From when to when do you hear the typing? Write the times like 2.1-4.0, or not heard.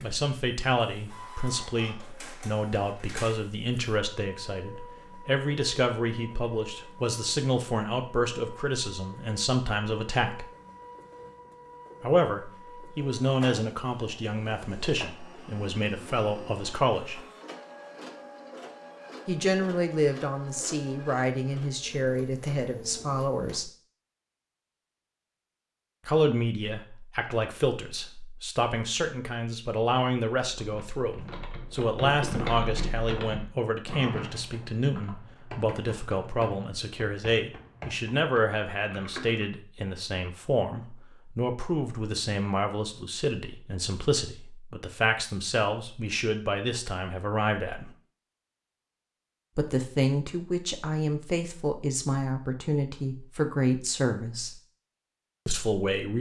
30.5-39.5.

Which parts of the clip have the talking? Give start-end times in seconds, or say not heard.
0.0-10.4, 12.0-17.2, 19.2-23.7, 26.1-47.9, 49.5-54.5, 55.5-56.1.